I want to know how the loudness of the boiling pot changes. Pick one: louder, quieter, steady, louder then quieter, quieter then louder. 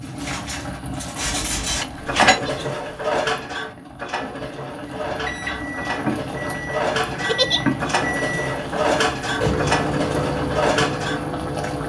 quieter then louder.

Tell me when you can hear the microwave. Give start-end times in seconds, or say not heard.
5.1-11.8.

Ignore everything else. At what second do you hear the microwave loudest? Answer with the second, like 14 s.
10 s.